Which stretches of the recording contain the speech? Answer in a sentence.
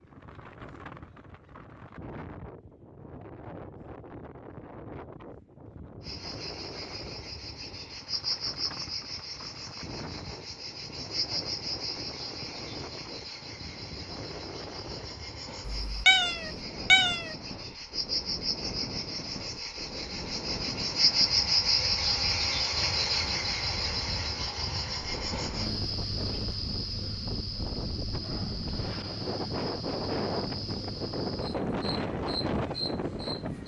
The speech can't be heard in this clip.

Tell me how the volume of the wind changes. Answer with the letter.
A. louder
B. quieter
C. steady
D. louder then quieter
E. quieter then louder
A.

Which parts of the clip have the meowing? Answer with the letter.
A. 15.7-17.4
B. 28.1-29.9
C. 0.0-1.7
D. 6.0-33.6
A.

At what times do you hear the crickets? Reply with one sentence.
You can hear the crickets from 6.0 to 33.6 s.